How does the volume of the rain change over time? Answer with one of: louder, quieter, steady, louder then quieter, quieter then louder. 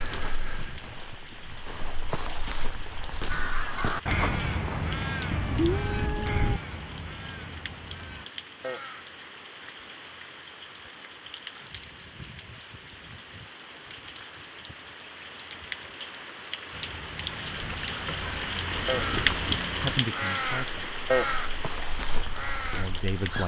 louder.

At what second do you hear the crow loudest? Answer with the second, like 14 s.
21 s.